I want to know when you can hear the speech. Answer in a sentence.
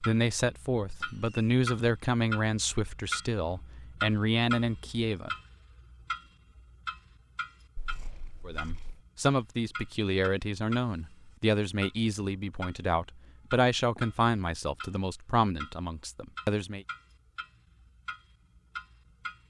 The speech can be heard from 0.0 to 5.3 s and from 8.4 to 16.9 s.